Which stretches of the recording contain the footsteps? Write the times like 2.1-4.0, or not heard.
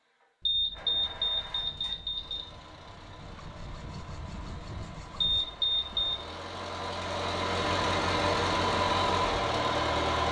not heard.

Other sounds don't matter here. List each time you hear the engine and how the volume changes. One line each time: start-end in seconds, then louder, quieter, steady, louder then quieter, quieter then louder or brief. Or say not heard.
0.0-10.2 louder.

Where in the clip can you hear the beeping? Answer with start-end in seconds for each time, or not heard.
0.5-2.5, 5.2-6.2.